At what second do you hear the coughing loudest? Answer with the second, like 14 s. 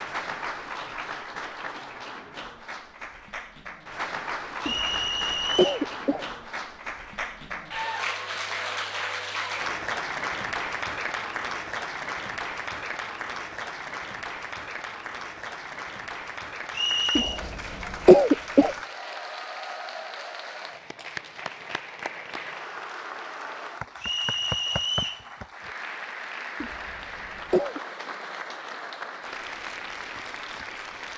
18 s.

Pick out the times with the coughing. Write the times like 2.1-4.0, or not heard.
4.7-6.2, 17.1-18.8, 26.6-27.8.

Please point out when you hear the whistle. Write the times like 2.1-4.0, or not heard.
4.6-5.8, 16.7-17.4, 24.0-25.2.